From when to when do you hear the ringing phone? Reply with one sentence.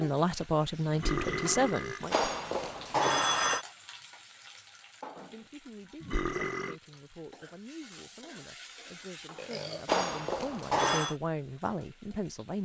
You can hear the ringing phone from 2.1 to 3.6 s and from 9.8 to 11.2 s.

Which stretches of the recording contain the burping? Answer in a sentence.
You can hear the burping from 0.9 to 2.0 s, from 6.0 to 6.8 s and from 9.3 to 10.0 s.